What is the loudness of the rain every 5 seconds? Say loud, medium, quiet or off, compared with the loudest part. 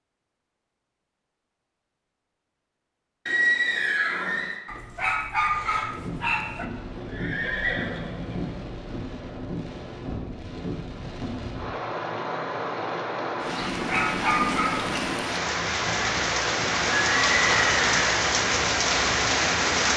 off, quiet, medium, loud.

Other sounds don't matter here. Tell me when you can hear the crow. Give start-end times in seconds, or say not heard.
not heard.